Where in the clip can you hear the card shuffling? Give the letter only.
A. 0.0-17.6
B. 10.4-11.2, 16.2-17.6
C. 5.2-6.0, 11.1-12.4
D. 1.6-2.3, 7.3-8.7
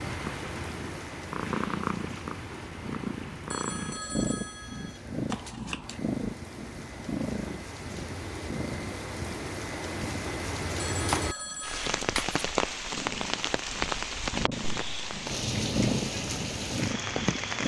C.